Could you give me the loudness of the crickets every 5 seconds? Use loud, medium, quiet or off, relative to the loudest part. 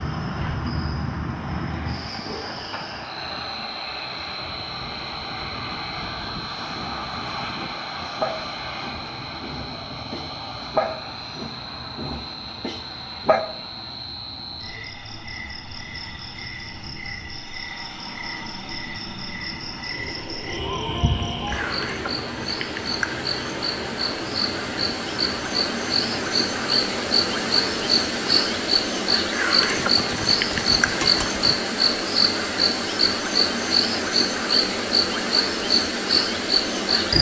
medium, quiet, quiet, quiet, medium, loud, loud, loud.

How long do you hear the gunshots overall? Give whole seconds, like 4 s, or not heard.
2 s.